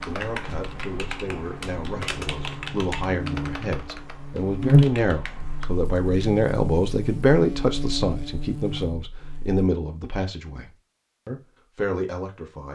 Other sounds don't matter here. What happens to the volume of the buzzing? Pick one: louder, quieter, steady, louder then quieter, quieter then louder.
louder then quieter.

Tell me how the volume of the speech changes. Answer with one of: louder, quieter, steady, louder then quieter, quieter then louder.
louder then quieter.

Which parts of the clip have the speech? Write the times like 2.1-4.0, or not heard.
0.1-12.7.